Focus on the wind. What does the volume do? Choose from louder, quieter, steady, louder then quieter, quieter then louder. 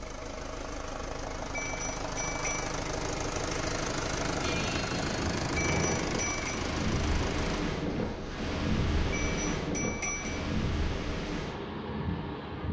steady.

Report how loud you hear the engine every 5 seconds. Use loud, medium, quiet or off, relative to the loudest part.
loud, loud, off.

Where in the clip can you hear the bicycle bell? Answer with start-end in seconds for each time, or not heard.
1.5-2.8, 5.5-6.6, 9.1-10.4.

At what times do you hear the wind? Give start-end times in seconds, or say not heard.
4.1-12.6.